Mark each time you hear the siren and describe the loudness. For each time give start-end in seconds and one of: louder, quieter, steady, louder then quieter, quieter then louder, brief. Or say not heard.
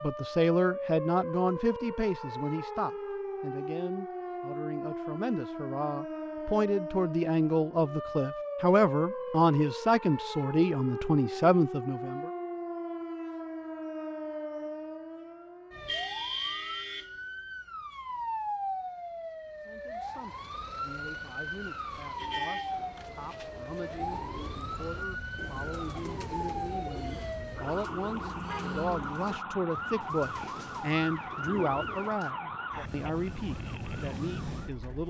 0.0-35.0 steady.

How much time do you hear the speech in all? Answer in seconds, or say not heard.
28 s.